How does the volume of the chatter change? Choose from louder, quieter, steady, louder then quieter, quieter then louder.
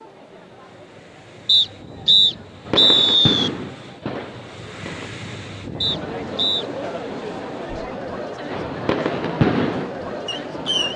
louder.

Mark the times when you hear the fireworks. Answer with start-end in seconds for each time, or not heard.
2.6-5.1, 8.4-10.9.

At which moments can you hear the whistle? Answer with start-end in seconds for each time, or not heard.
1.4-3.5, 5.8-6.7.